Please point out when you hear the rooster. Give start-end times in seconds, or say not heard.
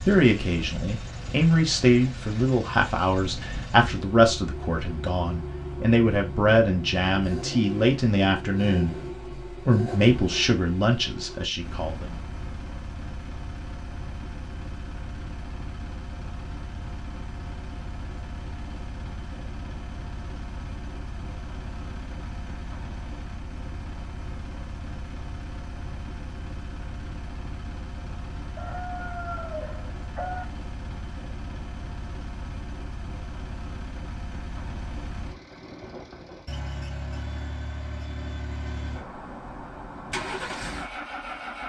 28.6-30.4.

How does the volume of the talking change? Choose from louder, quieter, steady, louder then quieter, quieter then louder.
steady.